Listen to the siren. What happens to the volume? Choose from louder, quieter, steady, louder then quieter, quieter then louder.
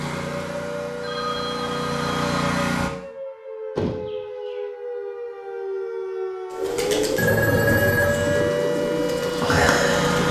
louder.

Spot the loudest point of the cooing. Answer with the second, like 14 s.
10 s.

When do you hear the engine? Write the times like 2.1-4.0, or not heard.
0.0-2.9, 8.0-10.2.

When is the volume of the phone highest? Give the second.
8 s.